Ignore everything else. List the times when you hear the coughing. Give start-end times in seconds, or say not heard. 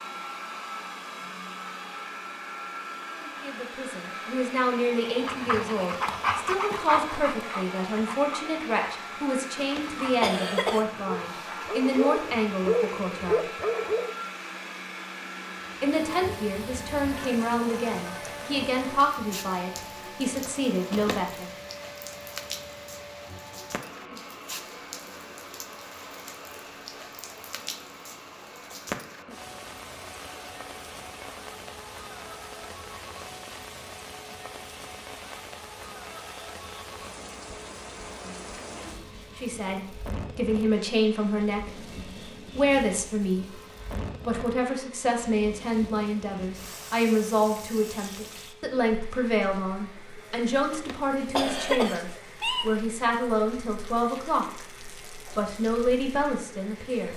9.6-10.8, 20.9-21.3, 50.7-52.7.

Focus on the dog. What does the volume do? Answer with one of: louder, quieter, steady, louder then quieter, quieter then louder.
quieter then louder.